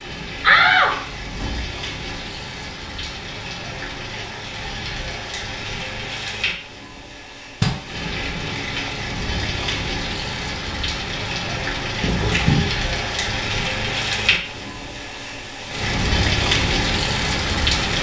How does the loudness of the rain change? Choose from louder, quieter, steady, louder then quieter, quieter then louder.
louder.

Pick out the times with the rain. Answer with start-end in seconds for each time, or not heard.
0.0-17.9.